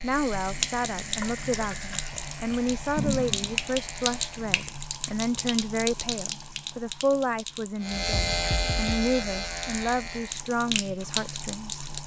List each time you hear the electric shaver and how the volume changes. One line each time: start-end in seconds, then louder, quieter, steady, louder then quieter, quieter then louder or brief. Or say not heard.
0.0-4.5 steady
7.8-10.4 brief.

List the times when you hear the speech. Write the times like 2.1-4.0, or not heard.
0.0-11.8.